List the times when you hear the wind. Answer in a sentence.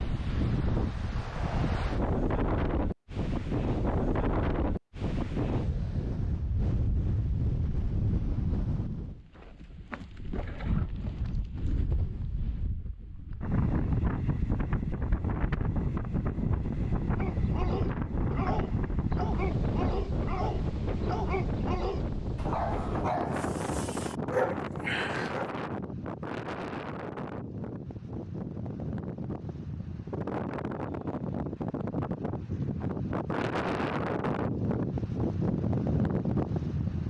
The wind can be heard from 0.0 to 37.0 s.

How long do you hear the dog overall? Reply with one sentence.
The dog can be heard for 8 seconds in total.